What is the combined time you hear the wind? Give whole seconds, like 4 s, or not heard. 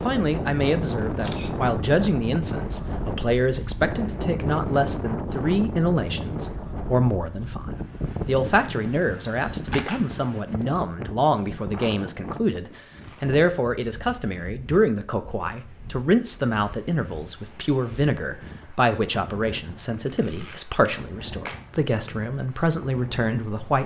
24 s.